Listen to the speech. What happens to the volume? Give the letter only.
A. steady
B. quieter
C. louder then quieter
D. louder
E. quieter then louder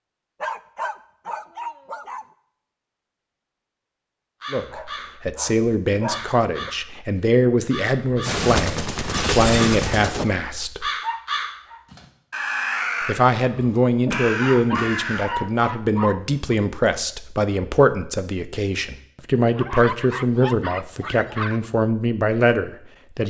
A.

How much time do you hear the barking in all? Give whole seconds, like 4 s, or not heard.
9 s.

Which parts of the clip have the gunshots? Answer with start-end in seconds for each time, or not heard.
8.2-10.2.